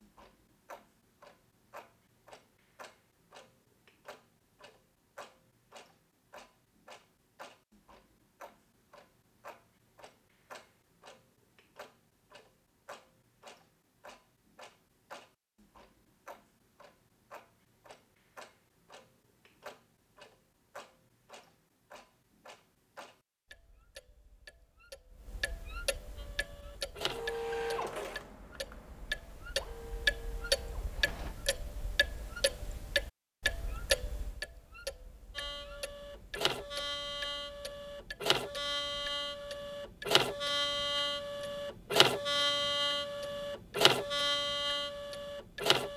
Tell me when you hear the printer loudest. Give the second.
42 s.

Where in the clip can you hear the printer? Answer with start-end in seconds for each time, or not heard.
26.1-31.4, 35.4-45.9.